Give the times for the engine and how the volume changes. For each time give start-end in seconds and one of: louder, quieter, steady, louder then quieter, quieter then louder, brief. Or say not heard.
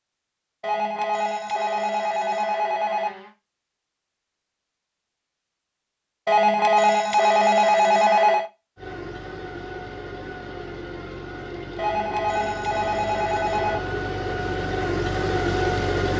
8.8-16.1 louder.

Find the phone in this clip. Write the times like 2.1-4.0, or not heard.
0.6-3.3, 6.2-8.5, 11.8-13.8.